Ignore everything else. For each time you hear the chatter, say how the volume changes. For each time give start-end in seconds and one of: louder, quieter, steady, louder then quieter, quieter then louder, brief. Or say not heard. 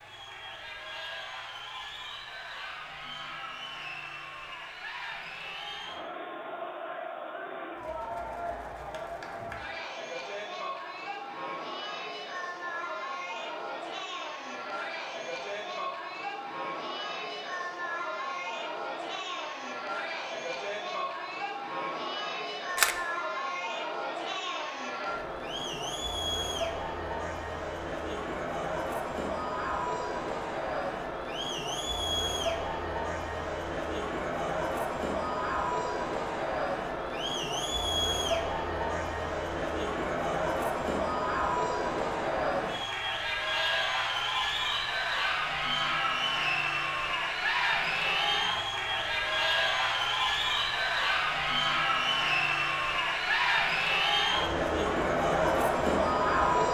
0.0-56.6 louder.